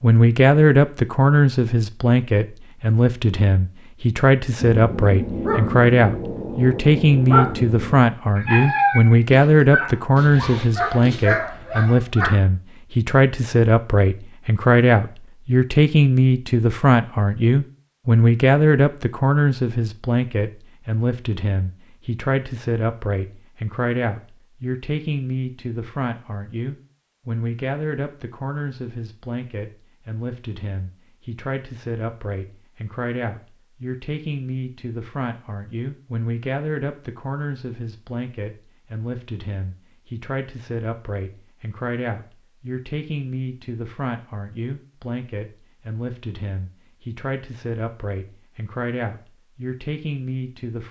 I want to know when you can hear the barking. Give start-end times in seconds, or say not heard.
4.5-12.3.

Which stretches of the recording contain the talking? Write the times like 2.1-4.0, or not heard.
0.0-50.8.